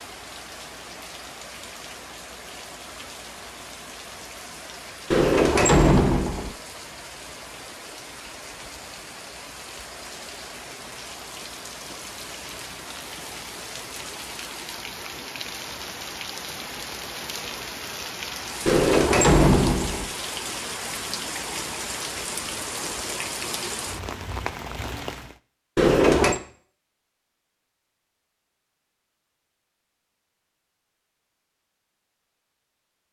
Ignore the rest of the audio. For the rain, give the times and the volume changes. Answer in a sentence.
You can hear the rain from 0.0 to 25.4 s, getting louder.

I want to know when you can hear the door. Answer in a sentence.
You can hear the door from 5.1 to 6.5 s, from 18.6 to 20.1 s and from 25.8 to 26.4 s.